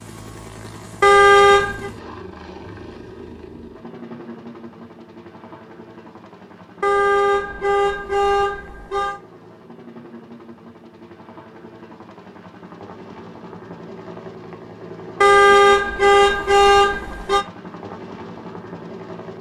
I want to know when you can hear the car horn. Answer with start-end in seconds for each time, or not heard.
1.0-1.9, 6.8-9.2, 15.2-17.4.